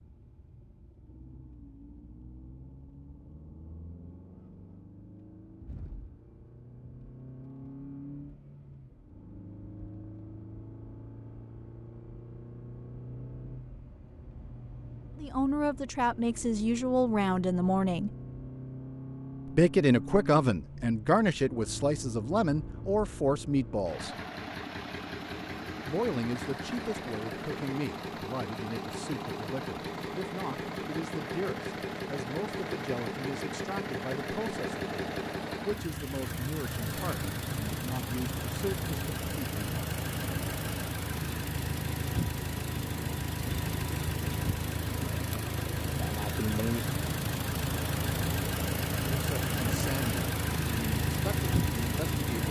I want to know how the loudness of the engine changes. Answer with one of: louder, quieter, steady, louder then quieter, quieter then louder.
louder.